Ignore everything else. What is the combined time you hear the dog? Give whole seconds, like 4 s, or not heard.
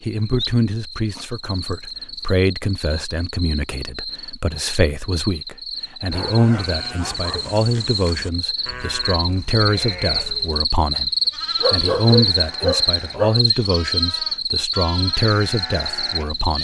5 s.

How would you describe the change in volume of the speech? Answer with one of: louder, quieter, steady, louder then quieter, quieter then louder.
steady.